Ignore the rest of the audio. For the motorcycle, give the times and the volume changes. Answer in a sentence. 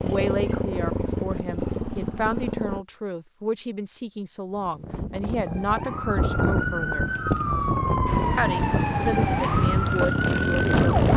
You can hear the motorcycle briefly from 0.0 to 2.9 s; and from 7.0 to 11.1 s, getting louder.